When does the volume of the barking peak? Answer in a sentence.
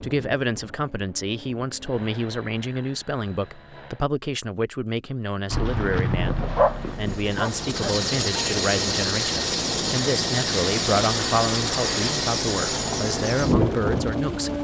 The loudest moment of the barking is at 7 seconds.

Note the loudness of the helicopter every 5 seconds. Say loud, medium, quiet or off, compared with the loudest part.
quiet, loud, loud.